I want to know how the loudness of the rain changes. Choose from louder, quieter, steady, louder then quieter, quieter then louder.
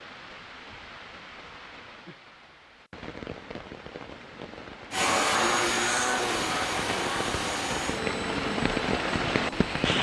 louder.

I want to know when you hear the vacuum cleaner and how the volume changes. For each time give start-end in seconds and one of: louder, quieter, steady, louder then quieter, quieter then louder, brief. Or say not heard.
4.9-9.9 quieter.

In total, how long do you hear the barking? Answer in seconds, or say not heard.
not heard.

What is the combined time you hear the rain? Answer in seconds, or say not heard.
10 s.